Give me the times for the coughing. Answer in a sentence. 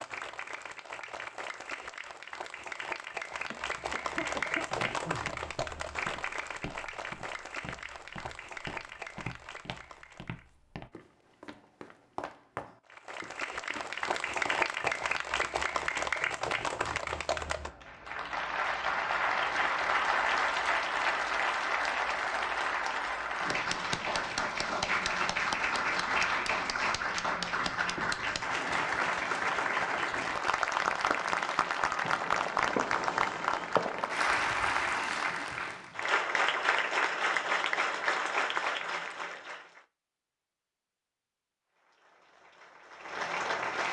The coughing can be heard from 3.5 to 5.3 s.